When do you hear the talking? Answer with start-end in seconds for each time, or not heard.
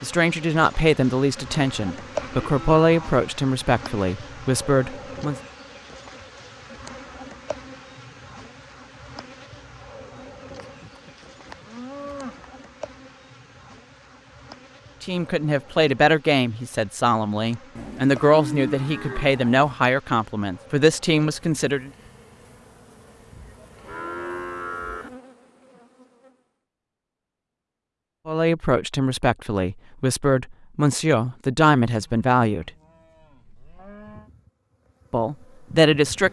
0.0-5.3, 15.0-21.9, 28.2-32.7, 35.1-36.2.